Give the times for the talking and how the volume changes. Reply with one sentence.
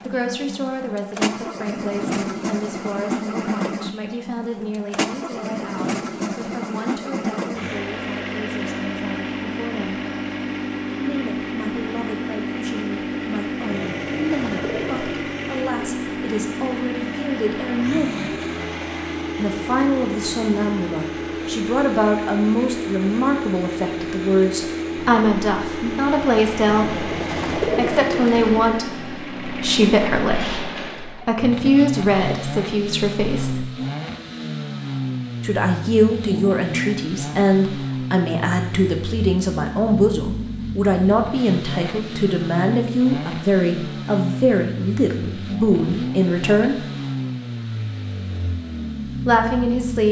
You can hear the talking from 0.1 to 10.0 s, getting quieter; from 10.9 to 18.3 s, getting louder; from 19.4 to 33.6 s, at a steady volume; from 35.4 to 46.9 s, at a steady volume; and briefly from 49.0 to 50.0 s.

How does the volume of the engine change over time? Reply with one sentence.
The loudness of the engine stays about the same.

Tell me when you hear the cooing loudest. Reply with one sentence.
The loudest moment of the cooing is at 28 seconds.